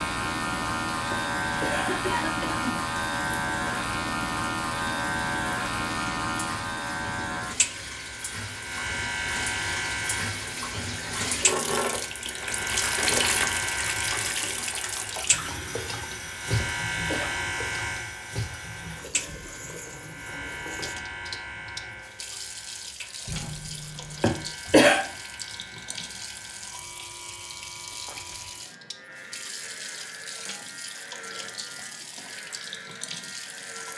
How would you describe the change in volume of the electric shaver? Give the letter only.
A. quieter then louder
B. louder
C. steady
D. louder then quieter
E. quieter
E.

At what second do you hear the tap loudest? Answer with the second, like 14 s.
13 s.